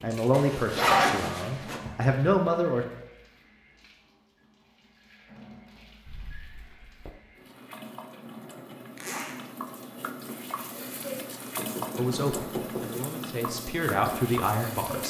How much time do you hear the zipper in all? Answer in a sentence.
The zipper can be heard for 2 seconds in total.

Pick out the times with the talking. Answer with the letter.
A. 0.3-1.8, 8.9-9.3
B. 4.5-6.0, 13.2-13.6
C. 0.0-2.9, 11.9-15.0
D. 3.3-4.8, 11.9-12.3
C.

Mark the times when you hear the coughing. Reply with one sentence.
The coughing can't be heard in this clip.